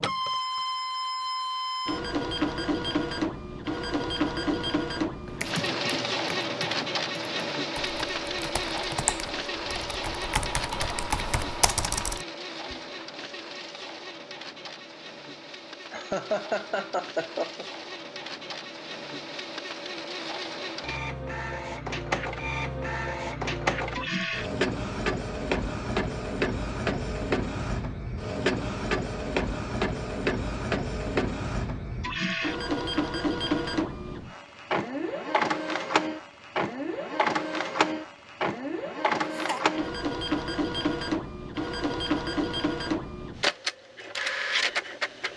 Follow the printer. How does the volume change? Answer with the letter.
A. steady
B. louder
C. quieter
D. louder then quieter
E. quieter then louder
E.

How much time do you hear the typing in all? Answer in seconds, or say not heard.
7 s.